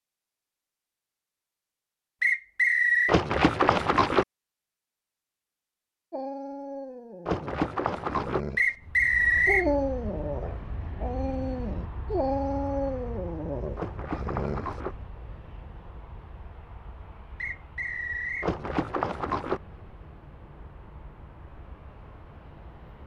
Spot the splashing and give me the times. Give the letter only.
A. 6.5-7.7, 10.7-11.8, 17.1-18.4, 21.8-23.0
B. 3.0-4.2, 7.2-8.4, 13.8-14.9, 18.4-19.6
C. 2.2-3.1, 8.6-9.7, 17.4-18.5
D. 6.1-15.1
B.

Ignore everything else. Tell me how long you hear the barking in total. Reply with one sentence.
The barking can be heard for 9 seconds in total.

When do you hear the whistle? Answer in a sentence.
The whistle can be heard from 2.2 to 3.1 s, from 8.6 to 9.7 s and from 17.4 to 18.5 s.